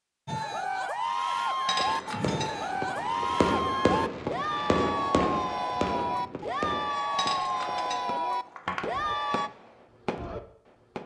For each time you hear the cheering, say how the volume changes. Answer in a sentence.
The cheering can be heard from 0.2 to 9.5 s, at a steady volume.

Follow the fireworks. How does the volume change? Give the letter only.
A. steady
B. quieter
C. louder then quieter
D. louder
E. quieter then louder
E.